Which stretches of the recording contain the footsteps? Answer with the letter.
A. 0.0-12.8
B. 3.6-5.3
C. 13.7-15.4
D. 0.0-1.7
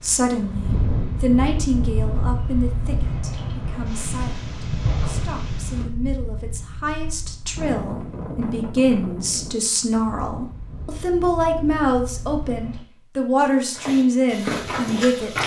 C.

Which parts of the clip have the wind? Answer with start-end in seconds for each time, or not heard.
0.0-12.8.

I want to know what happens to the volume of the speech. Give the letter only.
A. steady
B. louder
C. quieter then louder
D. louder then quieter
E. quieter
C.